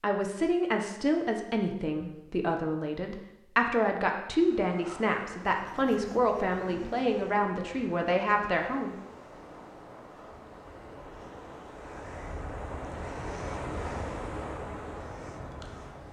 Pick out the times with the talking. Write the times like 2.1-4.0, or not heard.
0.0-8.9.